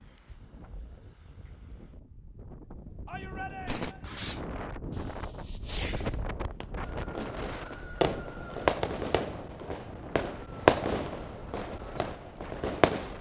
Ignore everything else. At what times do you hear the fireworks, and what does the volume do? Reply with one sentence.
You can hear the fireworks from 3.6 to 13.1 s, getting louder then quieter.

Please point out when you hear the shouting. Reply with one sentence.
The shouting can be heard from 3.0 to 4.0 s.